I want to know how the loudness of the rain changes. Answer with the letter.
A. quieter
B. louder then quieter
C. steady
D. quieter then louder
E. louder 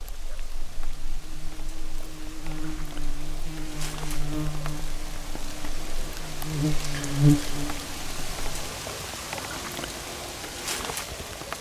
E.